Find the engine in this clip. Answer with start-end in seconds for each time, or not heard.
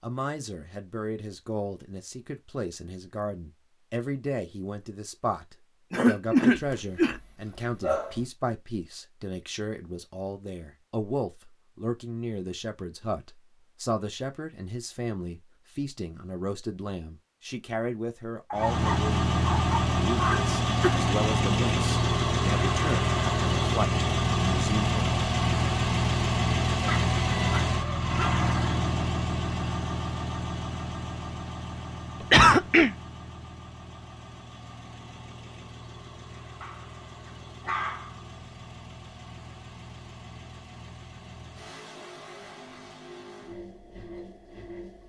18.5-45.0.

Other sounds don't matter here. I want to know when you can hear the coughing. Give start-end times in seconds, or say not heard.
5.9-7.2, 20.1-21.0, 32.3-32.9.